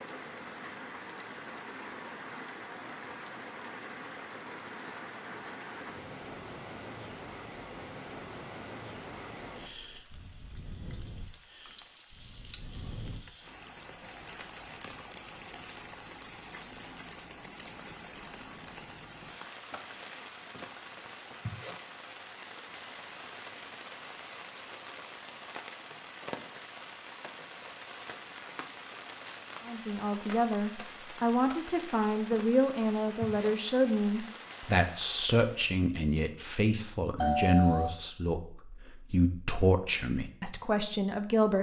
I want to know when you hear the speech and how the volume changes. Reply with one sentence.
The speech can be heard from 29.6 to 41.5 s, at a steady volume.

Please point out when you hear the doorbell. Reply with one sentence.
You can hear the doorbell from 37.2 to 37.9 s.